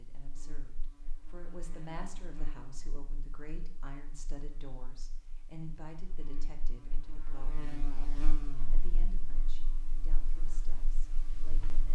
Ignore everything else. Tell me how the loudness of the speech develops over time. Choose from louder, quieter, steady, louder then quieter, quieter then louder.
quieter.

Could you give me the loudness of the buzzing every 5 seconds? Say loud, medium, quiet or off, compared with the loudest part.
medium, loud, medium.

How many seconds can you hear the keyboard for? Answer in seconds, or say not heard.
not heard.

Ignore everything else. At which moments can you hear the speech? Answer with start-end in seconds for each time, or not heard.
0.0-11.9.